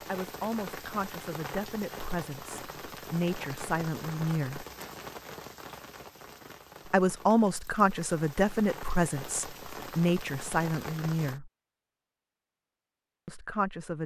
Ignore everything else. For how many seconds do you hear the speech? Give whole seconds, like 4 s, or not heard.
10 s.